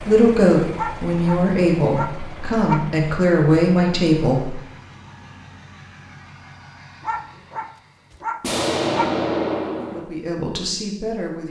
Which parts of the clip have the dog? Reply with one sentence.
The dog can be heard from 0.8 to 2.9 s and from 7.0 to 9.2 s.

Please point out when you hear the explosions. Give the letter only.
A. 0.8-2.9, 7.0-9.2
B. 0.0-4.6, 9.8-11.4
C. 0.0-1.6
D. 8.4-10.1
D.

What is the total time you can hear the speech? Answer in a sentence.
The speech can be heard for 6 seconds in total.